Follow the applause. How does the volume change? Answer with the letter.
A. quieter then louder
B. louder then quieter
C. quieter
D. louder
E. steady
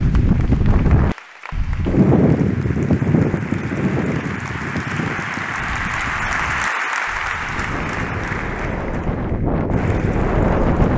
B.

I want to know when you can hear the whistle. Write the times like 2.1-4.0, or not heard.
not heard.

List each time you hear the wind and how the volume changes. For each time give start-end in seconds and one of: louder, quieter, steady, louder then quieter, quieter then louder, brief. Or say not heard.
0.0-10.9 quieter then louder.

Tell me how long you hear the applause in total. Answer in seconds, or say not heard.
11 s.